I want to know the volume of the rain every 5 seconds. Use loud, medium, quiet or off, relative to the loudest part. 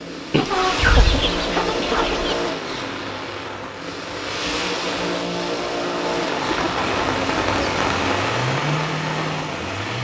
medium, loud.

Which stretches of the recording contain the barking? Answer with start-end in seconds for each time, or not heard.
not heard.